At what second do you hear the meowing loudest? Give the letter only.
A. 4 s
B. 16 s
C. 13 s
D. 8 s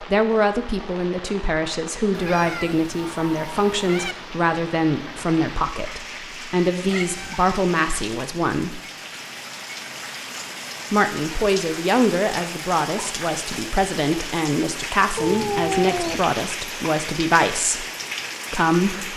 B.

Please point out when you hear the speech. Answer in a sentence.
You can hear the speech from 0.0 to 8.8 s, from 10.9 to 17.9 s and from 18.5 to 19.1 s.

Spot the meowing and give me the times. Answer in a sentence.
The meowing can be heard from 2.1 to 4.2 s, from 6.9 to 7.5 s and from 15.2 to 16.2 s.